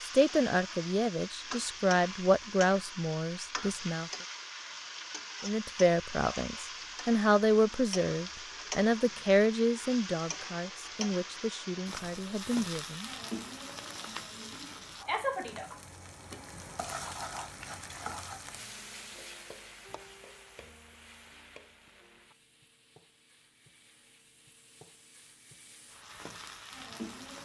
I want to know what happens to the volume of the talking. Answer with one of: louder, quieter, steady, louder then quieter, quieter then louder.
quieter.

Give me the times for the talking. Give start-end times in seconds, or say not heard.
0.0-4.1, 5.4-13.1.